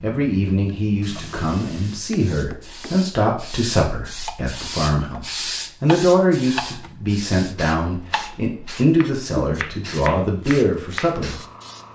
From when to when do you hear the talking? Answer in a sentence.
You can hear the talking from 0.0 to 11.4 s.